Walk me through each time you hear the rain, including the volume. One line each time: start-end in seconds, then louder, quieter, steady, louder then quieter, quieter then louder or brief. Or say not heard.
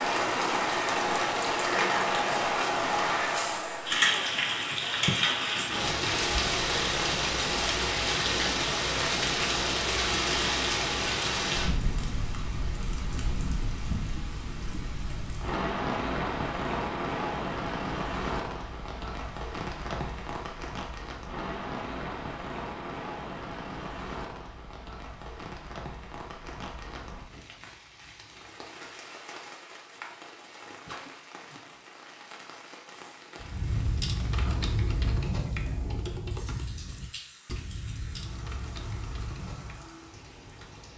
0.0-40.9 quieter.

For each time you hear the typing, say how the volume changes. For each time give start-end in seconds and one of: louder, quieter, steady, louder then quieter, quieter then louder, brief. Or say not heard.
33.4-39.9 quieter.